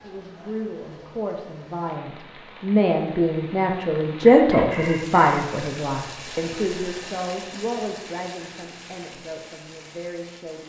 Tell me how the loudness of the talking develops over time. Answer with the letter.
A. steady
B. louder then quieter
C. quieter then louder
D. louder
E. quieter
B.